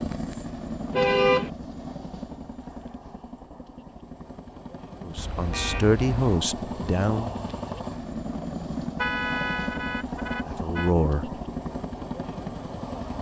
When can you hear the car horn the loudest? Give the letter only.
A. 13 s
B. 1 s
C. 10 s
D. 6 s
B.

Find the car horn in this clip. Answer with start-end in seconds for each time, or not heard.
0.9-1.5, 5.2-6.4, 8.9-10.9.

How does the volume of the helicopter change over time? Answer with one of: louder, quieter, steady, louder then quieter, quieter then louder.
quieter then louder.